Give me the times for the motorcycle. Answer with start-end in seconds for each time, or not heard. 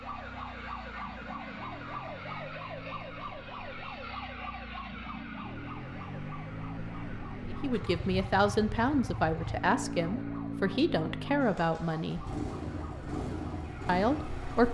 0.0-14.6.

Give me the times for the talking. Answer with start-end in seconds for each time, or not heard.
7.5-12.2, 13.8-14.6.